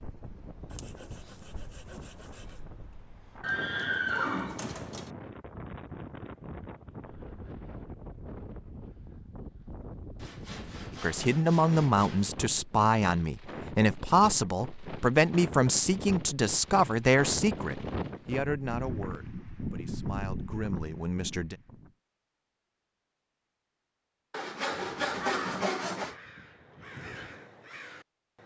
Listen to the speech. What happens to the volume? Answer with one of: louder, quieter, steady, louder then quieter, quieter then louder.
quieter.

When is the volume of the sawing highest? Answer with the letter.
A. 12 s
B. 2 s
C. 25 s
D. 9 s
C.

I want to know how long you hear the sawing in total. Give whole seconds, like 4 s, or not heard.
6 s.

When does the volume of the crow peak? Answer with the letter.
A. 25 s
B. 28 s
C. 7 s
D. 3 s
A.